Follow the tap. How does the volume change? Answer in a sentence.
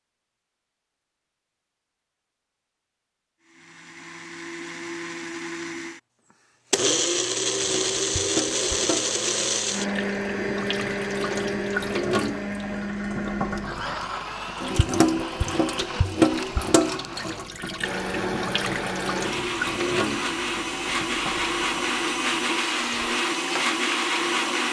The loudness of the tap goes up, then down.